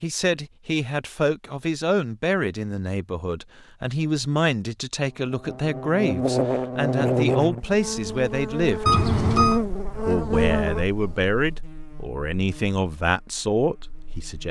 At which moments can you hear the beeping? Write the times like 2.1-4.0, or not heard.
8.8-9.6.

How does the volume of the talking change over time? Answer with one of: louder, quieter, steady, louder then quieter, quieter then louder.
steady.